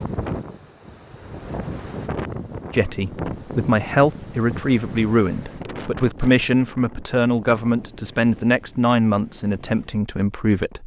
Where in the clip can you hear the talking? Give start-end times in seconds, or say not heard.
2.7-10.8.